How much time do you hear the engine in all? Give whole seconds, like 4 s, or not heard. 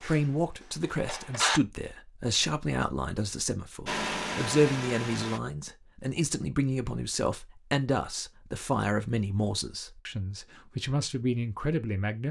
3 s.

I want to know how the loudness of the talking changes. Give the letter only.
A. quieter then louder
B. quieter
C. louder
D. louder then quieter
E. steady
E.